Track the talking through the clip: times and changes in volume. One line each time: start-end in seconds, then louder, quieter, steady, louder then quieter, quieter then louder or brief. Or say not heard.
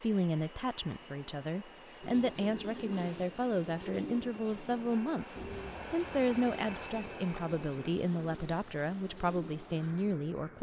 0.0-10.5 steady.